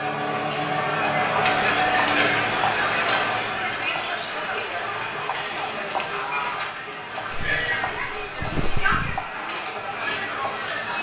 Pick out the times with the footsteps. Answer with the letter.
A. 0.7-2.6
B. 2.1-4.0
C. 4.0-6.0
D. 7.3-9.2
D.